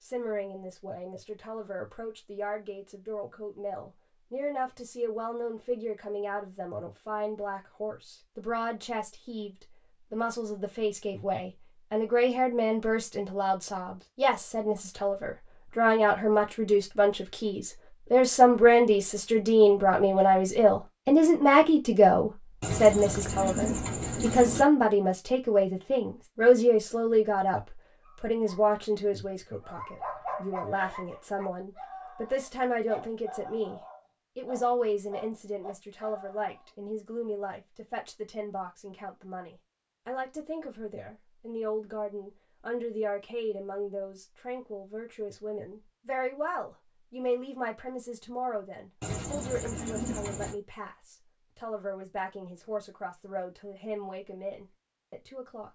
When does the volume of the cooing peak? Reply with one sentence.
The volume of the cooing peaks at 24 seconds.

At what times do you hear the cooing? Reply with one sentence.
You can hear the cooing from 22.6 to 24.6 s and from 49.0 to 50.5 s.